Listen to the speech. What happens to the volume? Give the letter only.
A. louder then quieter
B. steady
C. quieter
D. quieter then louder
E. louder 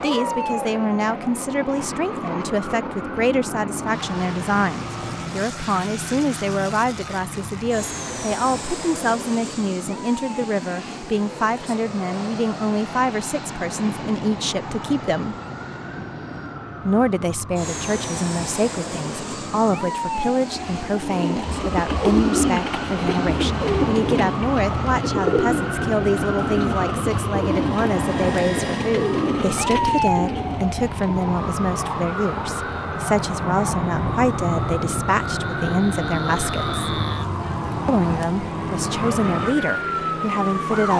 B.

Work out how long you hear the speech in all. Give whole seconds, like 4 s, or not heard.
38 s.